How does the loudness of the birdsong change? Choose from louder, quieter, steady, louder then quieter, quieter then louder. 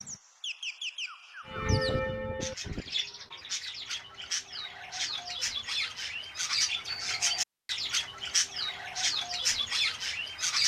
louder.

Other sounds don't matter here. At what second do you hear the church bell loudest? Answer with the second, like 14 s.
2 s.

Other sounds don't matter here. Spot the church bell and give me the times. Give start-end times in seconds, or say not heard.
1.4-3.4.